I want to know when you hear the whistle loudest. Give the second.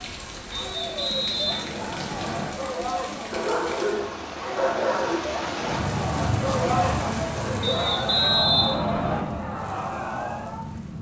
8 s.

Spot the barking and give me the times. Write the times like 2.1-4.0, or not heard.
3.3-5.2.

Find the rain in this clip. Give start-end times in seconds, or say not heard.
0.0-10.9.